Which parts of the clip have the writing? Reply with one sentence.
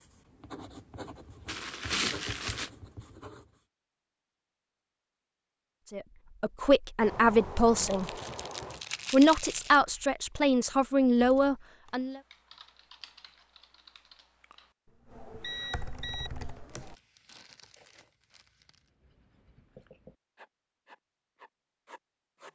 You can hear the writing from 0.0 to 3.6 s and from 18.6 to 22.5 s.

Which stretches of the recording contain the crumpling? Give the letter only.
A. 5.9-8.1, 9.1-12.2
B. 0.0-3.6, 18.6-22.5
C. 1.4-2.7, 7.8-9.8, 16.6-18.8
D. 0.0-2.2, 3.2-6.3
C.